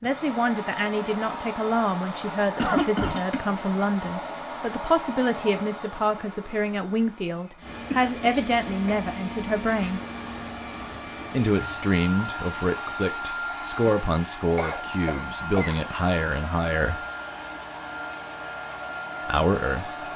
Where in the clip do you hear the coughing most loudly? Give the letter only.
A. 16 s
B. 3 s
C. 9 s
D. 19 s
B.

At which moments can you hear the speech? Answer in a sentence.
The speech can be heard from 0.0 to 10.0 s, from 11.3 to 17.0 s and from 19.2 to 20.1 s.